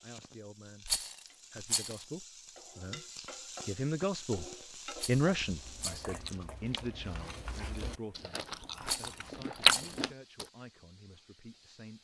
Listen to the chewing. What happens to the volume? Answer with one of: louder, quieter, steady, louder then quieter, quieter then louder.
louder.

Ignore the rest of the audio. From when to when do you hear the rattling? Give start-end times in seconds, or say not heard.
0.8-2.0, 5.0-6.2, 8.8-10.0.